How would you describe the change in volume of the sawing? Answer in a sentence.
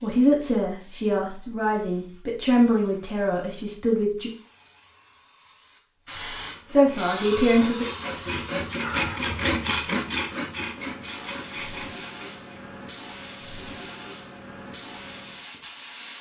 The loudness of the sawing goes up, then down.